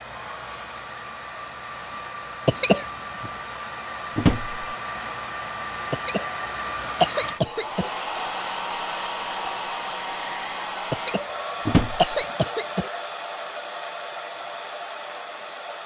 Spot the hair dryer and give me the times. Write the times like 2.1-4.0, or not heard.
0.0-15.8.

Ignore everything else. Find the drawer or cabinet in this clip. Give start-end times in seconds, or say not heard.
4.2-4.7, 11.7-12.2.